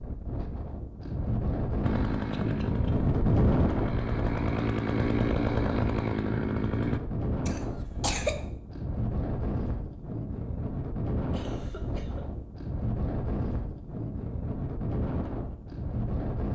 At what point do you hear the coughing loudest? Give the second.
8 s.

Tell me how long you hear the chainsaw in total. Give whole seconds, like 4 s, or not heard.
5 s.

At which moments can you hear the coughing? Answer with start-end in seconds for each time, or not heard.
2.3-2.9, 7.5-8.3, 11.3-12.3.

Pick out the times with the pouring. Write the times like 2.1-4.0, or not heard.
not heard.